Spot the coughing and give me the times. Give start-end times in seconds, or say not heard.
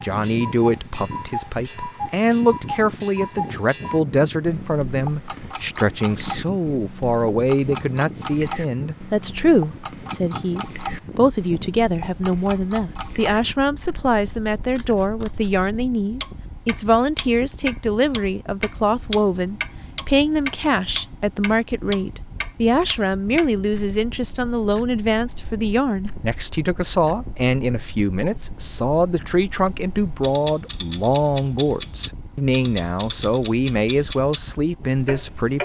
not heard.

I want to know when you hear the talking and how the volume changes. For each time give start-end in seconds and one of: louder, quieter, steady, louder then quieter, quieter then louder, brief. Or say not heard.
0.0-35.6 steady.